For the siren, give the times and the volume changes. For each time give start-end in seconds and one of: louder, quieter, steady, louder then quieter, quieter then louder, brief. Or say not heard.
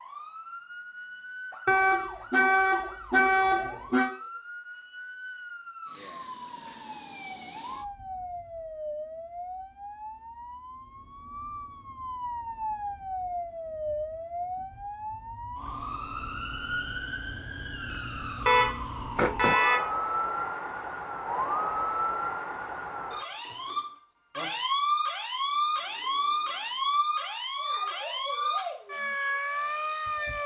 0.0-30.4 louder.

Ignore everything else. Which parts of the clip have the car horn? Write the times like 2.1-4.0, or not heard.
1.6-4.2, 18.4-19.9.